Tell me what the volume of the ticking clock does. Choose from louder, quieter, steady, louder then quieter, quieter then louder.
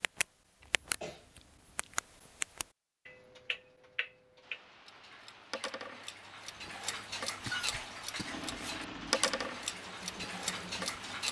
quieter then louder.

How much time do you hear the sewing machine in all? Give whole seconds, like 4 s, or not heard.
3 s.